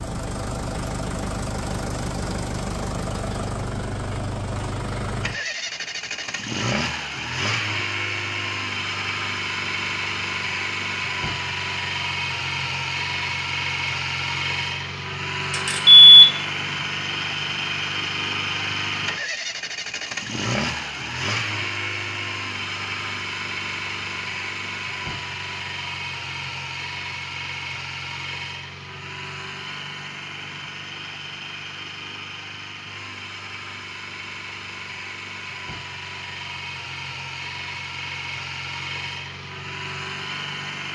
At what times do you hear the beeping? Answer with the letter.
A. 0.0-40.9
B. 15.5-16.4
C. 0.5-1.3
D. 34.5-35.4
B.